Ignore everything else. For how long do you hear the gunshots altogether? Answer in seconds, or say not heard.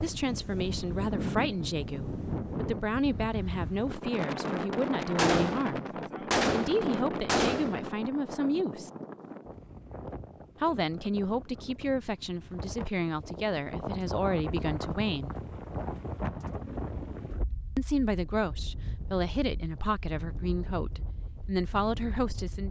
3 s.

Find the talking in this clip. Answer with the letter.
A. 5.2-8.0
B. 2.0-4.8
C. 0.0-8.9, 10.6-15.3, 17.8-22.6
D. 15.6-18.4
C.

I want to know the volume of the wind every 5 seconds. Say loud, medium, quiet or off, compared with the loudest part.
loud, loud, medium, medium, medium.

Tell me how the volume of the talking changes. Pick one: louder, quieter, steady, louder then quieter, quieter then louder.
steady.